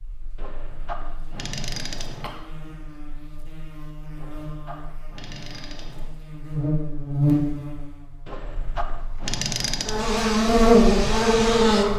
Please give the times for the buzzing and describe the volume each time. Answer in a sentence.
The buzzing can be heard from 0.0 to 11.9 s, getting louder.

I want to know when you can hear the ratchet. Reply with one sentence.
You can hear the ratchet from 0.3 to 2.4 s, from 4.2 to 6.2 s and from 8.2 to 10.0 s.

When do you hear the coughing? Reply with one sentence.
The coughing can be heard from 2.2 to 2.9 s.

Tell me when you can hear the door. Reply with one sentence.
You can't hear the door here.